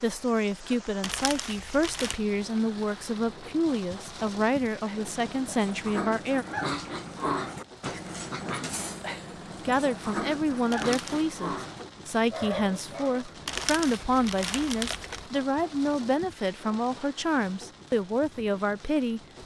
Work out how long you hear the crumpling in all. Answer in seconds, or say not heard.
4 s.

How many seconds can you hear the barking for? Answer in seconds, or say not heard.
9 s.